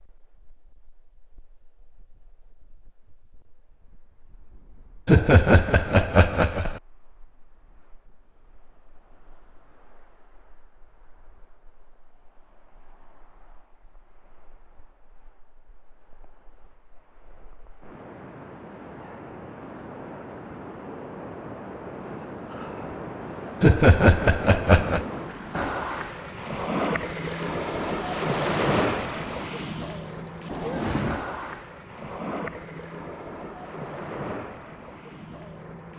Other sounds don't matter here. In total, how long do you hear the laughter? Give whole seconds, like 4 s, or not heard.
3 s.